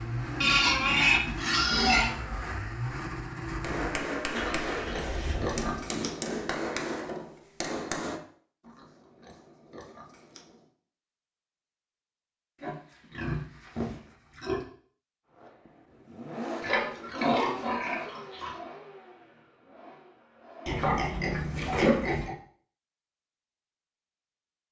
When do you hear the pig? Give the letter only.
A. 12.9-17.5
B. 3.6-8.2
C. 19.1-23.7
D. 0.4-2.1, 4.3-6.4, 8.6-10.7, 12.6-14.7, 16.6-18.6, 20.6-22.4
D.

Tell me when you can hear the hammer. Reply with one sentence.
The hammer can be heard from 3.6 to 8.2 s.